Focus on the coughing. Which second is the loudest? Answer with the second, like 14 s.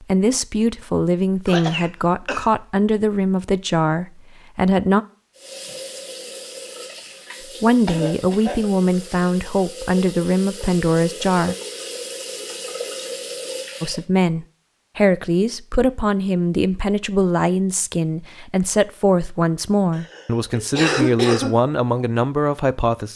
21 s.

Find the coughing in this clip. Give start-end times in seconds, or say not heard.
1.4-2.5, 7.8-8.6, 19.9-21.6.